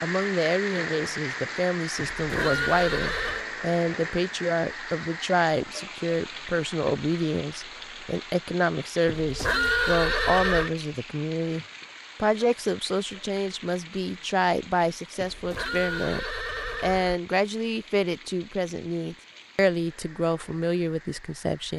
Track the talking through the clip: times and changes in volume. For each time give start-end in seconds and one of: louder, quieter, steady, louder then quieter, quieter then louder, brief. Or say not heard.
0.0-21.7 steady.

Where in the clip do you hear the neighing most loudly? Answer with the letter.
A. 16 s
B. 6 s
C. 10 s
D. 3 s
C.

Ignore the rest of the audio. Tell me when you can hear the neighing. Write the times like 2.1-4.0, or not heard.
1.9-3.5, 9.1-10.7, 15.2-17.1.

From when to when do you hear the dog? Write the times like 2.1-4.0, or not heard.
not heard.